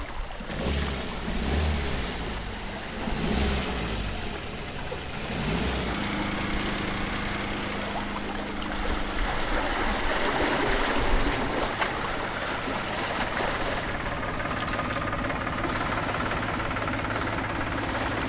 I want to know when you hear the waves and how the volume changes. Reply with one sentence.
The waves can be heard from 0.0 to 18.2 s, getting louder then quieter.